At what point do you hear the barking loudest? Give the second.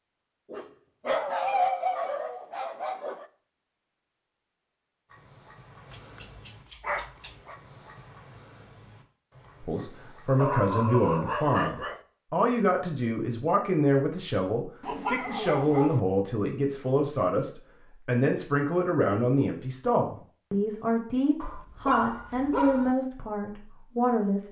2 s.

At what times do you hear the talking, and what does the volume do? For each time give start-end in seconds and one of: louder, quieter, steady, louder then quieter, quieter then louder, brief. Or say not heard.
9.6-24.4 steady.